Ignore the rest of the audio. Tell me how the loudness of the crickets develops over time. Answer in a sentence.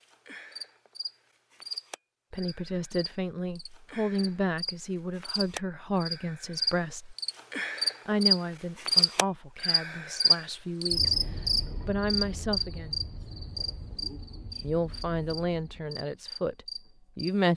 The volume of the crickets goes up, then down.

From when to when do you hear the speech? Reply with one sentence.
You can hear the speech from 2.3 to 7.2 s, from 8.1 to 12.9 s and from 14.6 to 17.5 s.